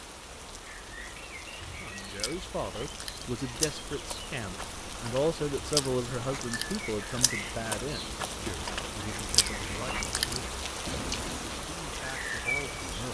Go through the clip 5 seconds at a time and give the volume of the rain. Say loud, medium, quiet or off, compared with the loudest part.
medium, loud, loud.